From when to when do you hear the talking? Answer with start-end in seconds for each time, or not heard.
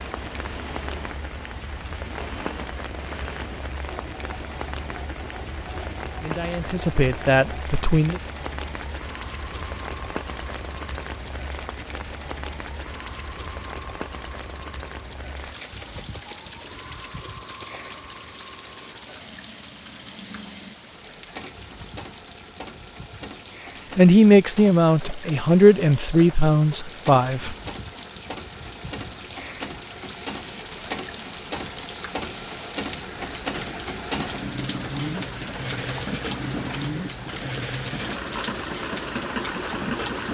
6.2-8.2, 23.9-27.6.